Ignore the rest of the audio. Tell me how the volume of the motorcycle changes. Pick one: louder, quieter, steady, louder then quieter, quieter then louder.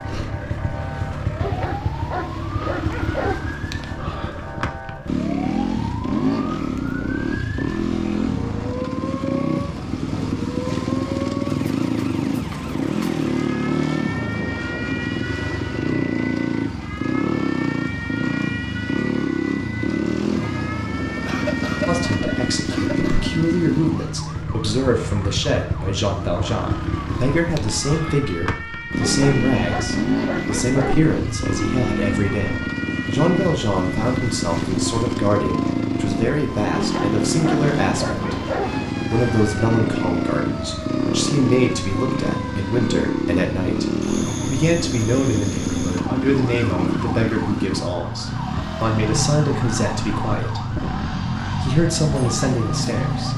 steady.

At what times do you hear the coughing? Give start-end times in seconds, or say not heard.
21.2-23.3.